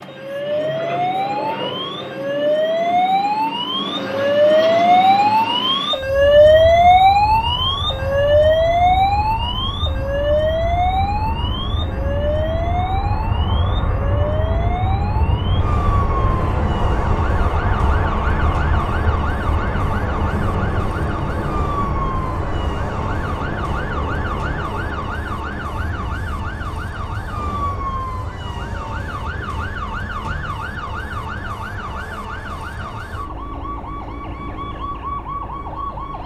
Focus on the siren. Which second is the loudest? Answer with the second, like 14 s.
7 s.